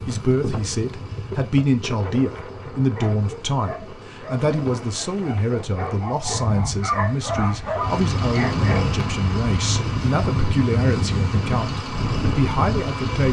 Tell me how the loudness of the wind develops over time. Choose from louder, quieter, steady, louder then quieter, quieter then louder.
quieter then louder.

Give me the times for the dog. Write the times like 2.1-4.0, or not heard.
3.0-9.0.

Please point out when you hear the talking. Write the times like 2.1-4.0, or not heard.
0.1-13.2.